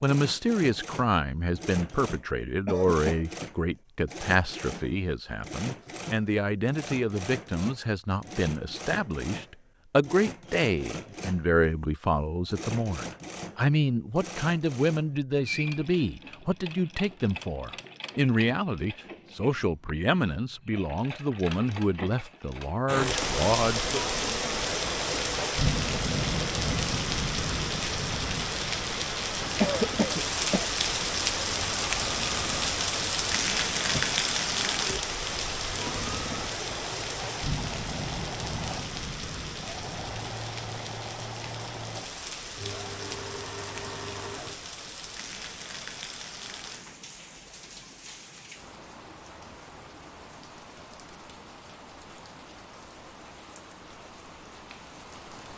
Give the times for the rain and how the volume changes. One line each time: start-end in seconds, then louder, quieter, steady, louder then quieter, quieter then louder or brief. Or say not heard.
22.9-55.5 quieter.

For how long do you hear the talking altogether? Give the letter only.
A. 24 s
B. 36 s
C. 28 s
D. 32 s
A.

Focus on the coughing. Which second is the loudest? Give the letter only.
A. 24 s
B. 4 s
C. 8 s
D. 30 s
D.